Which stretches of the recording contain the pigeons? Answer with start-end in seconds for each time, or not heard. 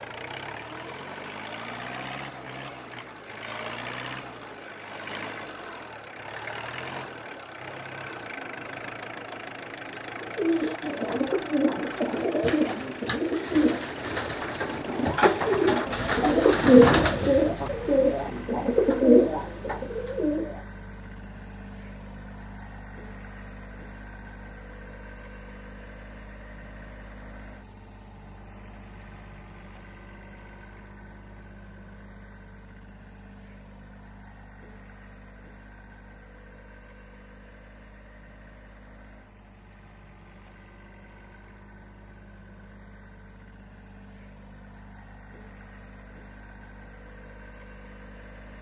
10.2-20.6.